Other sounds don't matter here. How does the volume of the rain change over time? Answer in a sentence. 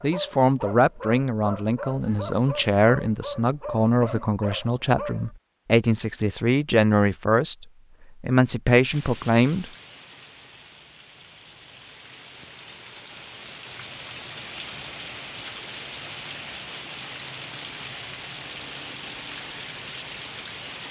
The loudness of the rain goes up.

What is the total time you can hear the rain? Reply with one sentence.
The rain can be heard for 12 seconds in total.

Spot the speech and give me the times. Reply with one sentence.
You can hear the speech from 0.0 to 9.7 s.